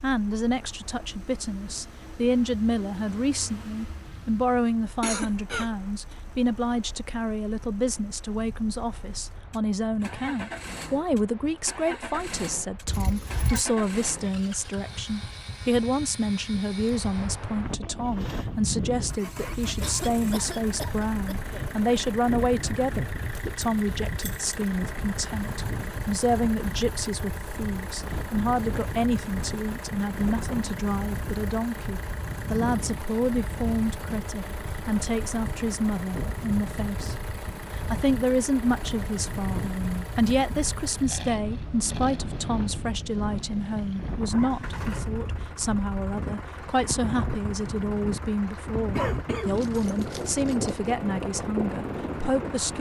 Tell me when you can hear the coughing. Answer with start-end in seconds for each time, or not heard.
4.8-6.2, 19.8-21.7, 49.0-49.8.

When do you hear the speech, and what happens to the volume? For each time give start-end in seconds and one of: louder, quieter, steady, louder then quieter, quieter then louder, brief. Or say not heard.
0.0-52.7 steady.